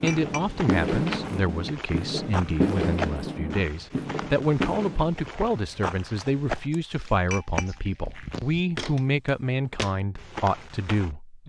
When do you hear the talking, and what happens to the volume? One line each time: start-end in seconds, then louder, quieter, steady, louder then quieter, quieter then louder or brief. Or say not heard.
0.0-11.4 steady.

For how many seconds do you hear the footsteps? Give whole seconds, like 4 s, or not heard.
11 s.